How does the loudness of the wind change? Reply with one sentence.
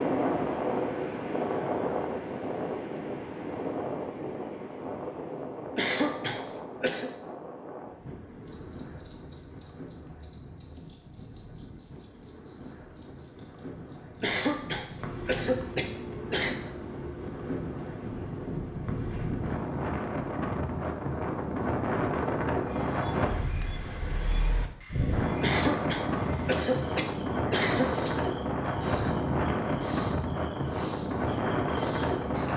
The loudness of the wind goes down, then up.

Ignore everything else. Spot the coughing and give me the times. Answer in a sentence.
The coughing can be heard from 5.8 to 7.1 s, from 14.2 to 16.6 s and from 25.4 to 28.1 s.